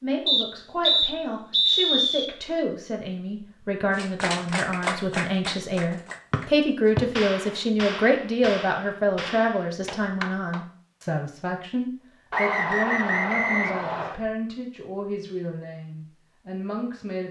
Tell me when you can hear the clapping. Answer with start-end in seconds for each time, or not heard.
3.9-10.7.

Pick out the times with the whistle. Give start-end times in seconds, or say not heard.
0.2-2.2, 6.3-7.0, 12.3-14.2.